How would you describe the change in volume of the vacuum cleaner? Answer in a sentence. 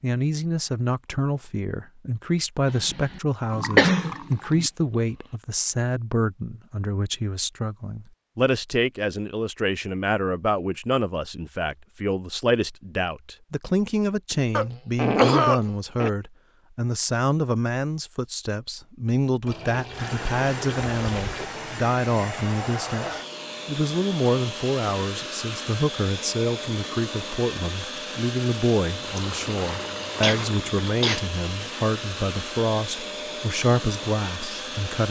The volume of the vacuum cleaner stays about the same.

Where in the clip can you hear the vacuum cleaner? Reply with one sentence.
The vacuum cleaner can be heard from 19.9 to 35.0 s.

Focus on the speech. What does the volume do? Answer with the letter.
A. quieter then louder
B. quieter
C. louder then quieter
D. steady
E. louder
D.